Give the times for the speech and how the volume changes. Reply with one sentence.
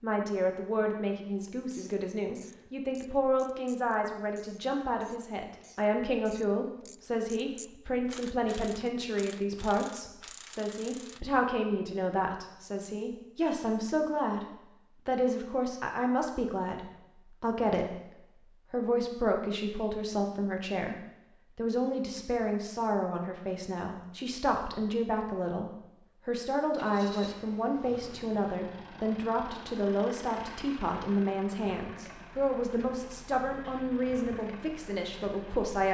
The speech can be heard from 0.0 to 20.9 s, at a steady volume; and from 21.6 to 35.8 s, at a steady volume.